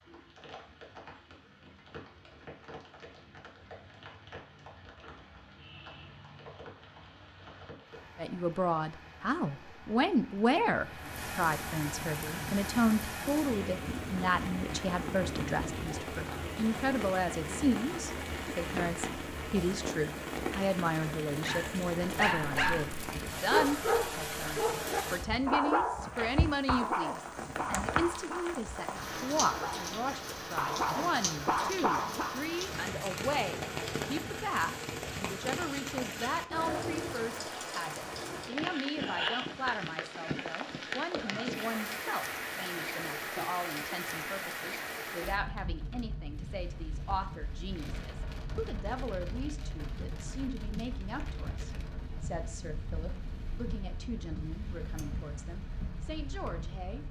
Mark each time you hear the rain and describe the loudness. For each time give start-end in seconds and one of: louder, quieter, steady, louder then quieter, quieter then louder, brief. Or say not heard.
0.0-57.0 louder then quieter.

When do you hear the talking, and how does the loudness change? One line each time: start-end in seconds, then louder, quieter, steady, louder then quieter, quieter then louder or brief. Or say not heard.
8.2-57.0 quieter.